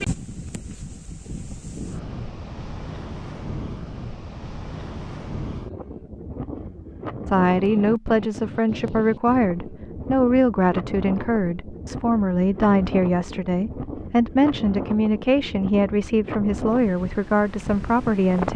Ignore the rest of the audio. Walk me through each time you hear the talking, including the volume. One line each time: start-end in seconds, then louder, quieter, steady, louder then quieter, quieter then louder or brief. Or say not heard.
7.2-18.5 steady.